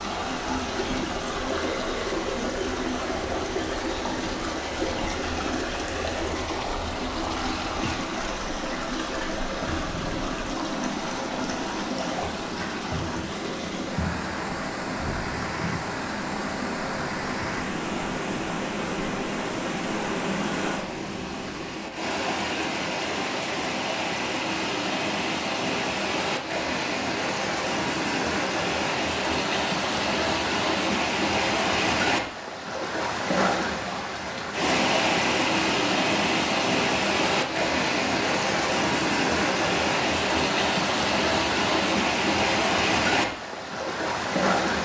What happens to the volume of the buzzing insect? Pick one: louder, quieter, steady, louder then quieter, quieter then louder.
louder.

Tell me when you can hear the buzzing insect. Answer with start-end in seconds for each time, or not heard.
0.0-21.8.